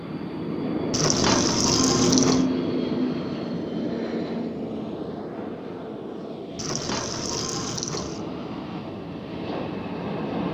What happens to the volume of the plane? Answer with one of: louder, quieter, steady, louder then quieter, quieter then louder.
quieter.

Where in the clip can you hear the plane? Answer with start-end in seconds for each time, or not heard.
0.0-10.5.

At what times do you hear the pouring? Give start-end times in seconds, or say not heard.
0.9-2.5, 6.5-8.2.